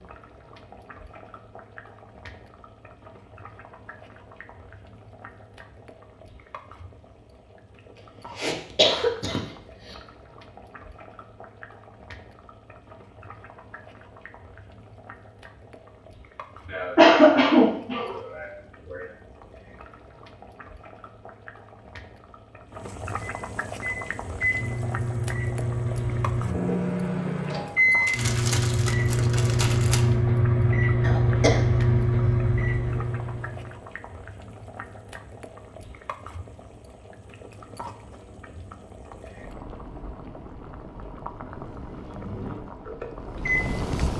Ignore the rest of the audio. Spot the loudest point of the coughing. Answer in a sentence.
The volume of the coughing peaks at 17 seconds.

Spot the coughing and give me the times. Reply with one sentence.
You can hear the coughing from 8.3 to 9.9 s, from 16.7 to 19.1 s and from 31.0 to 33.0 s.